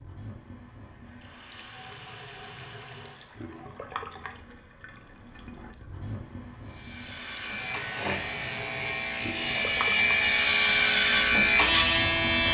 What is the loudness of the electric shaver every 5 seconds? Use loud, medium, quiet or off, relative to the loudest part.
off, medium, loud.